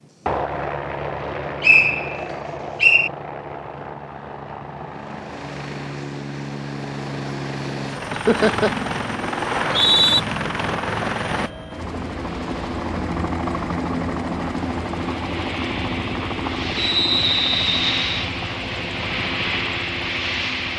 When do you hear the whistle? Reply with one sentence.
You can hear the whistle from 1.6 to 3.1 s, from 9.4 to 10.2 s and from 16.8 to 18.2 s.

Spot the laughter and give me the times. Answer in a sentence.
You can hear the laughter from 8.1 to 8.8 s.